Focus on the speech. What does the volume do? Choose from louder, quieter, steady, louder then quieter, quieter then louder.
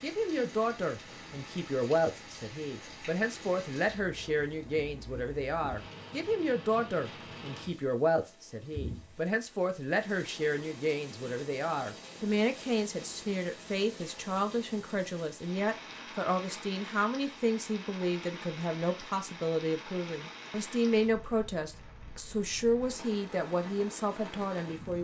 steady.